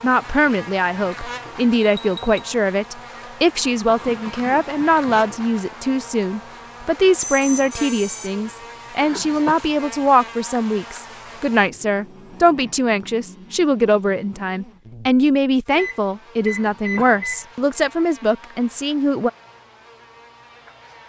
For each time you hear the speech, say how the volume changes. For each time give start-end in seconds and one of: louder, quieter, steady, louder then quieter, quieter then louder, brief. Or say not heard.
0.0-19.3 steady.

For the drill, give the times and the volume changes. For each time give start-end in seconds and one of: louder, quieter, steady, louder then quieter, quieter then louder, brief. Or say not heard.
not heard.